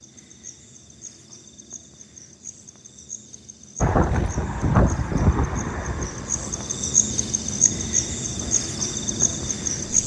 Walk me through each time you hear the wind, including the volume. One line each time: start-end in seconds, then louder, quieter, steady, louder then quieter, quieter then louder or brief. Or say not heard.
3.8-10.0 quieter.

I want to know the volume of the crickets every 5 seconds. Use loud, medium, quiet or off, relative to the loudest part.
quiet, loud.